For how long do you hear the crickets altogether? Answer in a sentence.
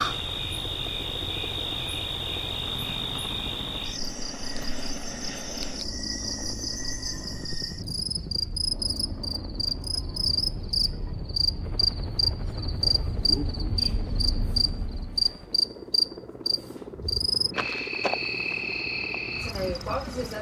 You can hear the crickets for 20 seconds altogether.